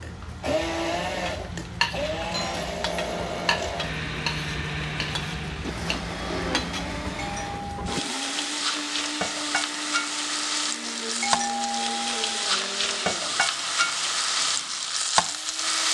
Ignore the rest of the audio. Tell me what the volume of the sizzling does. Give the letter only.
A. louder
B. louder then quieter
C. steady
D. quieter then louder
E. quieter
A.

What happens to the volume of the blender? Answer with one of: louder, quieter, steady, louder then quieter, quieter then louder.
quieter.